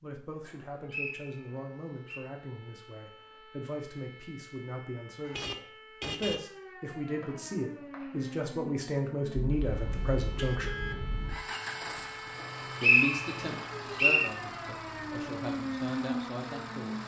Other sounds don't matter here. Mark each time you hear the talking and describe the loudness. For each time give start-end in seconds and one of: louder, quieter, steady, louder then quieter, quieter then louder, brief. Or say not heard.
0.0-10.7 louder
12.6-17.0 quieter then louder.